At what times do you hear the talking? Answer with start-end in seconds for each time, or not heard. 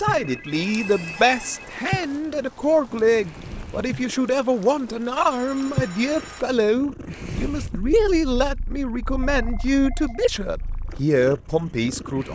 0.0-12.3.